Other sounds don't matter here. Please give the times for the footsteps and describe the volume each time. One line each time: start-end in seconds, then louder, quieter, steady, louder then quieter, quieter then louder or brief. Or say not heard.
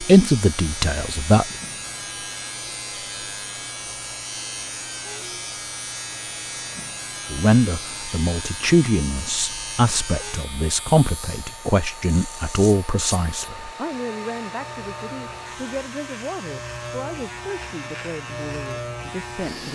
not heard.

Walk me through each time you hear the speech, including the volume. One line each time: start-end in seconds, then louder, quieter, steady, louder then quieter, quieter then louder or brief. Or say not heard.
0.0-1.4 brief
7.3-19.7 quieter.